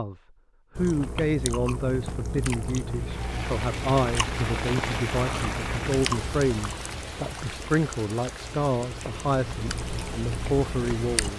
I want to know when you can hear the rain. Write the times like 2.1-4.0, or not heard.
2.9-11.3.